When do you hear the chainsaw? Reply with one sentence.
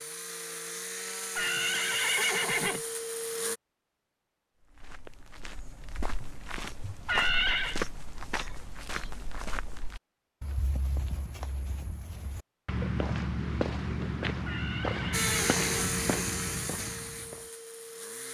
You can hear the chainsaw from 0.0 to 3.6 s and from 15.1 to 18.2 s.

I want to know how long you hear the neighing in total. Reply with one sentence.
The neighing can be heard for 4 seconds in total.